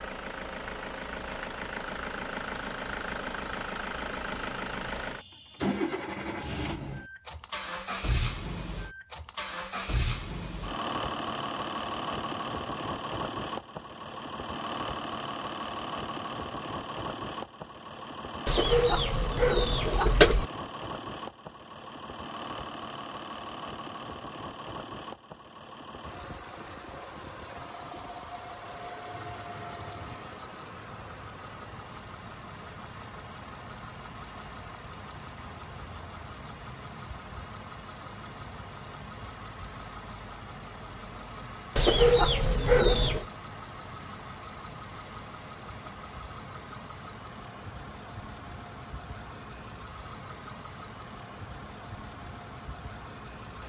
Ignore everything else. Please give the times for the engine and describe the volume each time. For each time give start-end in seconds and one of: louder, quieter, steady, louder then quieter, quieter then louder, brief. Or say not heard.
0.0-53.6 quieter.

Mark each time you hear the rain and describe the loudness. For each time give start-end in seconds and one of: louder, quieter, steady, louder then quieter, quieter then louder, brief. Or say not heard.
not heard.